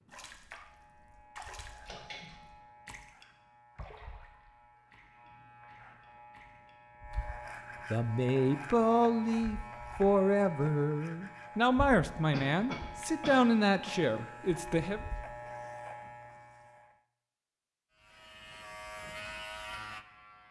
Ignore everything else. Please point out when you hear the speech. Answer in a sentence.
You can hear the speech from 7.9 to 15.0 s.